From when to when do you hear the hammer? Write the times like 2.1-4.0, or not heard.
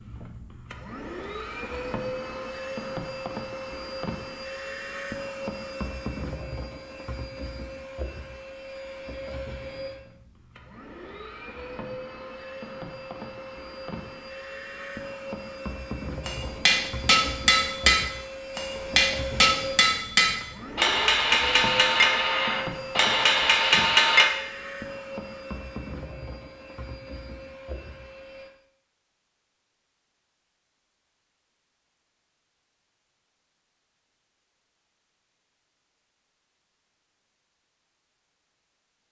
16.2-24.2.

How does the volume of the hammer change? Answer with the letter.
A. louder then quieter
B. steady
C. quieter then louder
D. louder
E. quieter
B.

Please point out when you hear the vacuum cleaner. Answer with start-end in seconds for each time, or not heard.
0.0-28.5.